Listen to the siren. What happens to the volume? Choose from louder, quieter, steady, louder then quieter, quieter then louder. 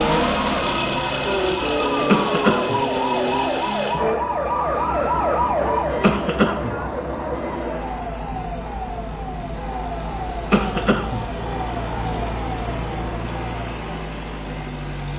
quieter.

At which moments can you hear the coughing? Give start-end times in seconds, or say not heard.
2.0-2.8, 6.0-6.8, 10.5-11.2.